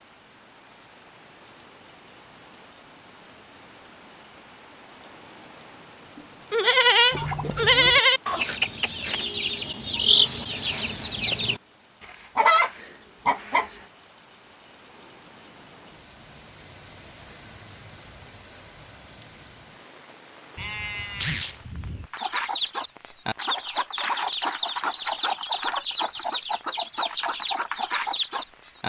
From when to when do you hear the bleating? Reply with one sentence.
The bleating can be heard from 6.2 to 8.2 s and from 20.6 to 22.1 s.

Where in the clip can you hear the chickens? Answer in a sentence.
You can hear the chickens from 7.1 to 13.8 s and from 22.1 to 28.8 s.